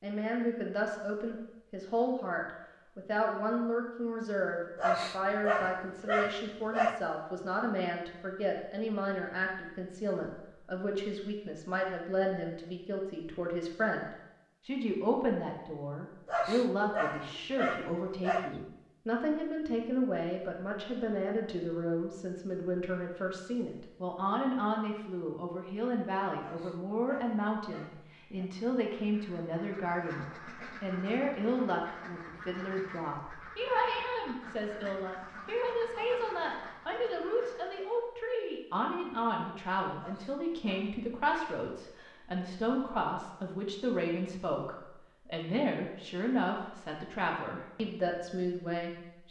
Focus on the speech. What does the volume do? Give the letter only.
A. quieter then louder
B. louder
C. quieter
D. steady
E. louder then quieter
D.